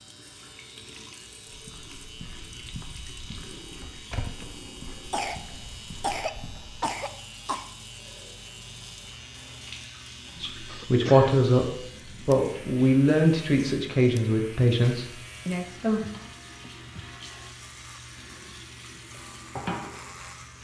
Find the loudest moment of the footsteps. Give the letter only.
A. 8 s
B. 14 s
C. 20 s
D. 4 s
D.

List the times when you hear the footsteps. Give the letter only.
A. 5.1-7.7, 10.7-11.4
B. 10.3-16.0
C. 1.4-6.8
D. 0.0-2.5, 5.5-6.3
C.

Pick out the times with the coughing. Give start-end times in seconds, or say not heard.
5.1-7.7, 10.7-11.4.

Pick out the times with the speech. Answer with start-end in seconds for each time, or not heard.
10.3-16.0.